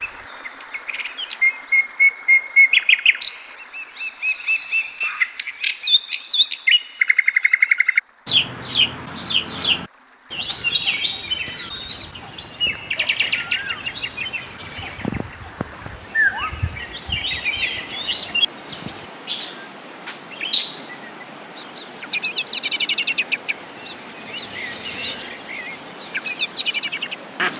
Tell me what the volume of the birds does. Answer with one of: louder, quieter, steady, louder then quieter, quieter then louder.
quieter.